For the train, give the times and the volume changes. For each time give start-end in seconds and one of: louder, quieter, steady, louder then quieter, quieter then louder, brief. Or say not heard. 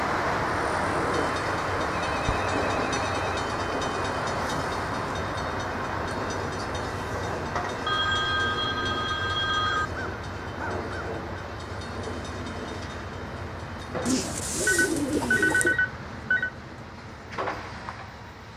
0.0-18.5 quieter.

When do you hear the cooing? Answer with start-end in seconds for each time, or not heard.
14.1-15.8.